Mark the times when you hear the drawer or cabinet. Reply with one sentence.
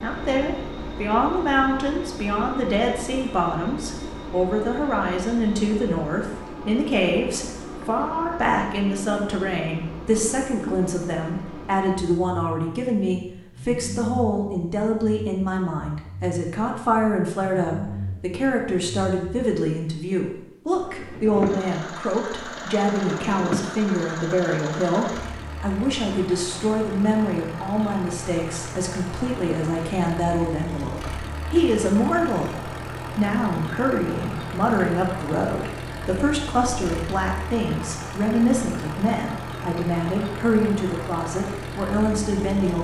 You can hear the drawer or cabinet from 23.1 to 23.8 s.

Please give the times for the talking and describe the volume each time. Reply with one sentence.
You can hear the talking from 0.0 to 42.7 s, at a steady volume.